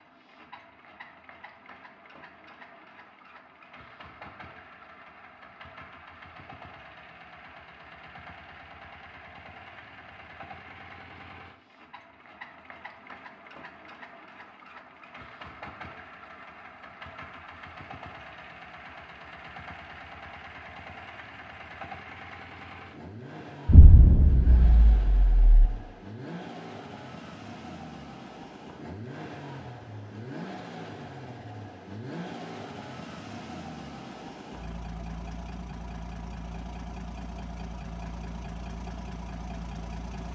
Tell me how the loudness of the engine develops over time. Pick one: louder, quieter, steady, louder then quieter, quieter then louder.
louder.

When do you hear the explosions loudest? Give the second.
24 s.